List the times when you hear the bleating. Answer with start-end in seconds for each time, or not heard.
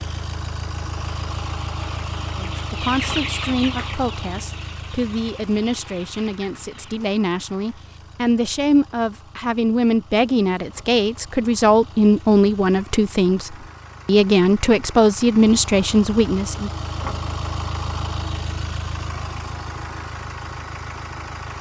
not heard.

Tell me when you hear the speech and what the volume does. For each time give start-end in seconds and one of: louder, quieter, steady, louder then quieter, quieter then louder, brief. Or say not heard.
2.4-16.7 louder.